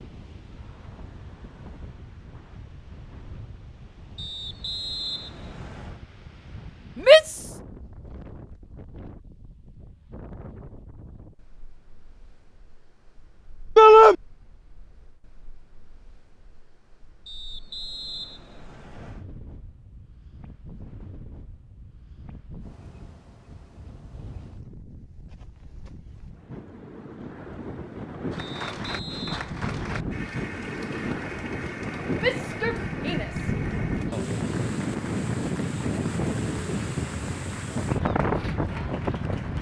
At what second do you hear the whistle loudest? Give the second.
5 s.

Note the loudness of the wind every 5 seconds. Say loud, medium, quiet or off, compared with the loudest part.
quiet, quiet, quiet, quiet, quiet, medium, loud, loud.